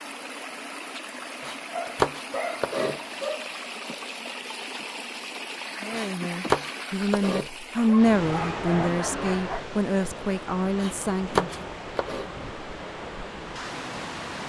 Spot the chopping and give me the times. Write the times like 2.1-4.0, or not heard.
1.4-3.0, 5.9-7.5, 10.8-12.3.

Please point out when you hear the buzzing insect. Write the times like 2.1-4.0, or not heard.
not heard.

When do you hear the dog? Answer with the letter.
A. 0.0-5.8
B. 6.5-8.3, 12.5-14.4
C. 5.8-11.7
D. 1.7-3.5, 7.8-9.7
D.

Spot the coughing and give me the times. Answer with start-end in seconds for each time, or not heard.
not heard.